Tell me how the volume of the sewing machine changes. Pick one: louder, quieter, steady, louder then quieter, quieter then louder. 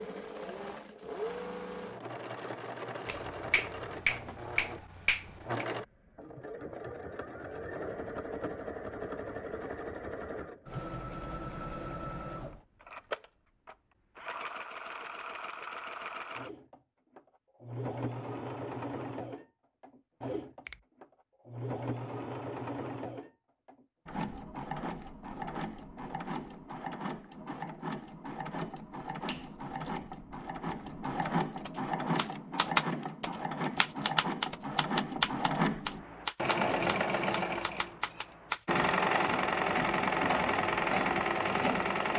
louder.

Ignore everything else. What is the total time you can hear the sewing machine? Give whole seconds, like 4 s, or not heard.
42 s.